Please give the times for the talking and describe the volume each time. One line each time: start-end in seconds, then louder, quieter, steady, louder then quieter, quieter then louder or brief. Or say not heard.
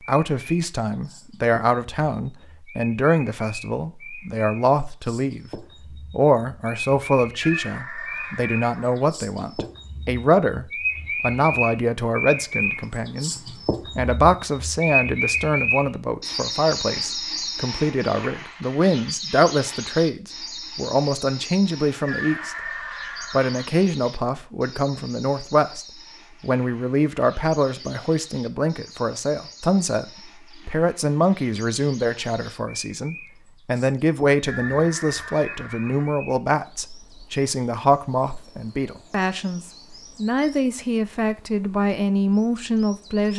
0.1-22.6 steady
23.3-43.3 steady.